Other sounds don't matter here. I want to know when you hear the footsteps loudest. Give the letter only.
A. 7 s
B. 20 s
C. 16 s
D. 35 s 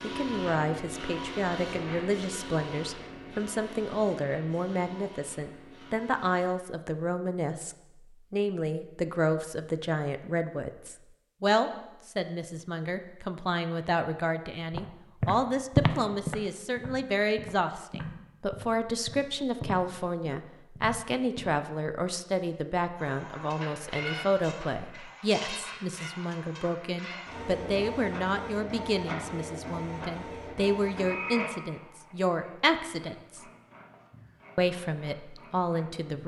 C.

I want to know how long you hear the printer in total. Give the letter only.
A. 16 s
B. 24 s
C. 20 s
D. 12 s
C.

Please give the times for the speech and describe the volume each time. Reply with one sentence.
You can hear the speech from 0.0 to 33.4 s, at a steady volume; and briefly from 34.5 to 36.2 s.